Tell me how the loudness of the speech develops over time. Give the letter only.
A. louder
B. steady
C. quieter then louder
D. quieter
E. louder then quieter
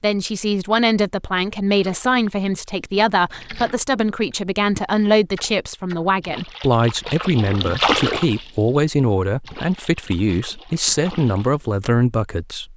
B.